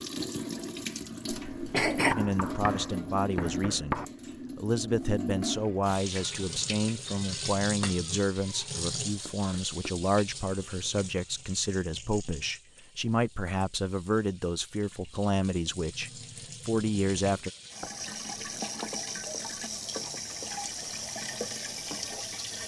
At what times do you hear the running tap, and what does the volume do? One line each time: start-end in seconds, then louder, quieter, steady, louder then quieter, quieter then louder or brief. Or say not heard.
0.0-22.6 quieter then louder.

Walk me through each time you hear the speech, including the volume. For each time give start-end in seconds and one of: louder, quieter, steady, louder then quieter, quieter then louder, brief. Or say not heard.
2.1-17.5 steady.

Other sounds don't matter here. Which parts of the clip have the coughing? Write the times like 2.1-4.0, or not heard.
1.3-2.1.